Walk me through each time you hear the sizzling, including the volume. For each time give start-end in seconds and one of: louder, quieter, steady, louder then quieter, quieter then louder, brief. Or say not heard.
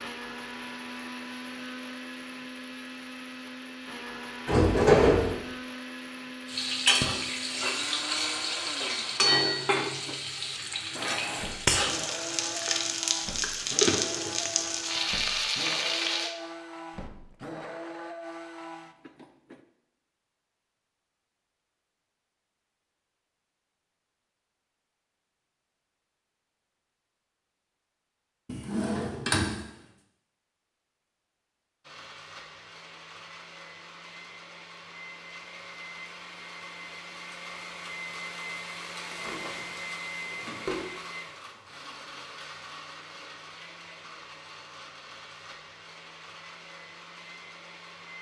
6.5-16.4 steady.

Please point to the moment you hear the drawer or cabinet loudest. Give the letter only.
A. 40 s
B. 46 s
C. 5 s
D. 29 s
C.